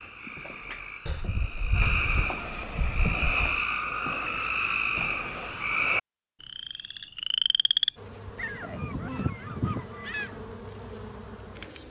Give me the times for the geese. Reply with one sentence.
You can hear the geese from 1.1 to 3.5 s and from 8.3 to 10.3 s.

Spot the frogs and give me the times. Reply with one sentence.
The frogs can be heard from 0.0 to 7.9 s.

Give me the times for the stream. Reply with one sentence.
You can't hear the stream here.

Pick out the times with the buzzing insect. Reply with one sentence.
The buzzing insect can be heard from 8.0 to 11.8 s.